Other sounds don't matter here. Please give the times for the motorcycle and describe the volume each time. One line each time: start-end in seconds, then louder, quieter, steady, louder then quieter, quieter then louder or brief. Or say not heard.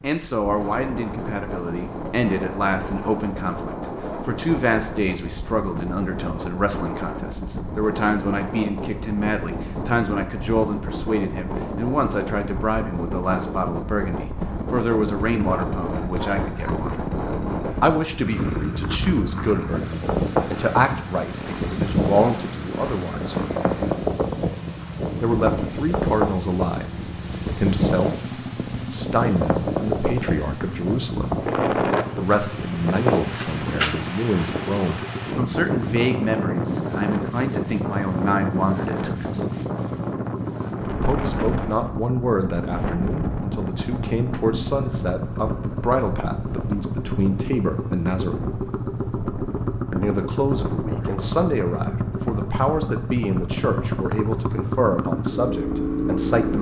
15.2-56.5 louder.